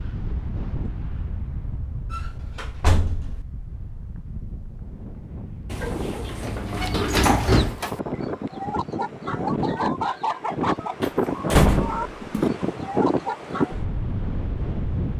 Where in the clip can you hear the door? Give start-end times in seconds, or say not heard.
2.1-3.4, 5.7-7.8, 11.0-12.4.